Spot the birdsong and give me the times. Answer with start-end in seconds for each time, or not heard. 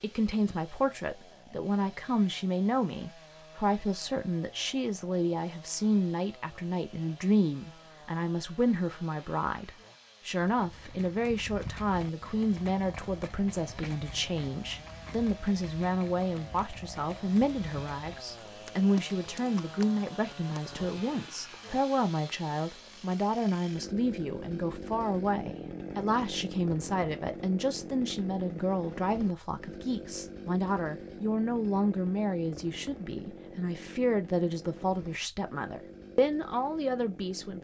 not heard.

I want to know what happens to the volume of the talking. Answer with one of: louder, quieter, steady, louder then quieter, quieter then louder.
steady.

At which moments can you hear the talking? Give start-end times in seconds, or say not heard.
0.0-37.5.